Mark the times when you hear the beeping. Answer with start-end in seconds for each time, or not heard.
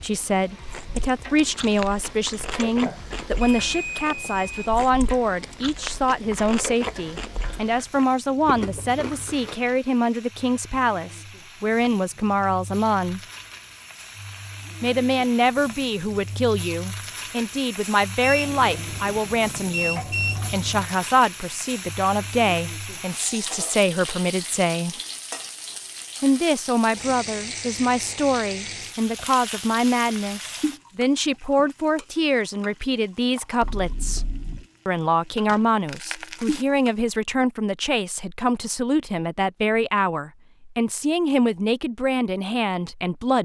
2.9-4.8, 18.2-20.9, 33.6-34.6.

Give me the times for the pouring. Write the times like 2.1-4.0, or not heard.
not heard.